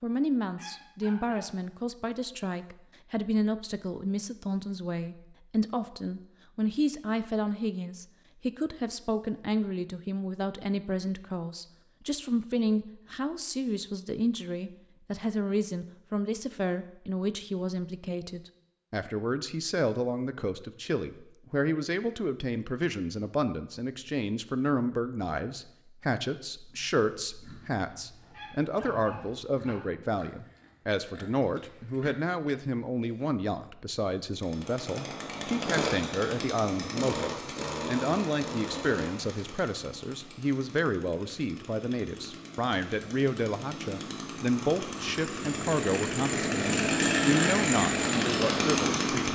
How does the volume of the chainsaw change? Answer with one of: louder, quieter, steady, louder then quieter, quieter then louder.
quieter then louder.